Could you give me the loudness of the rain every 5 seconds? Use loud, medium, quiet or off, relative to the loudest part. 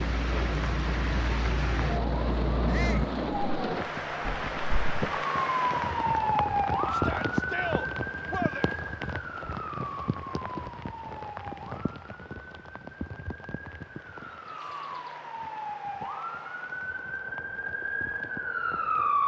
loud, loud, medium, quiet.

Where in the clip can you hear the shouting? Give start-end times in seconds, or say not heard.
2.6-3.1, 6.9-8.7, 14.5-15.1.